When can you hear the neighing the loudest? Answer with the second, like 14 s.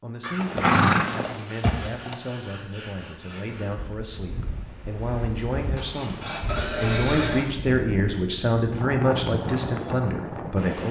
1 s.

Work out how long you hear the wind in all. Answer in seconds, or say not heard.
7 s.